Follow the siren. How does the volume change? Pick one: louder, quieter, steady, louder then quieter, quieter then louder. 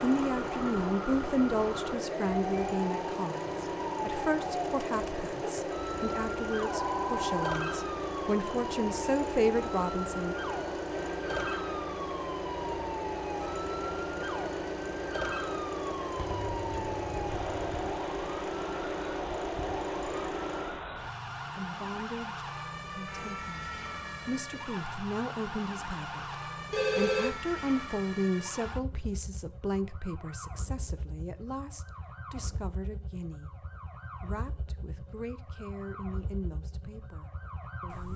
quieter.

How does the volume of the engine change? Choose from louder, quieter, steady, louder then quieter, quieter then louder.
steady.